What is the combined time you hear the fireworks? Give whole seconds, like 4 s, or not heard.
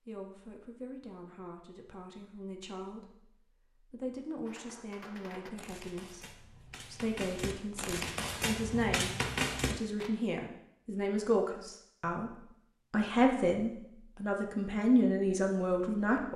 6 s.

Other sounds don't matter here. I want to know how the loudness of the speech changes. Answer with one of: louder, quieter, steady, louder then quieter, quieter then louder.
louder.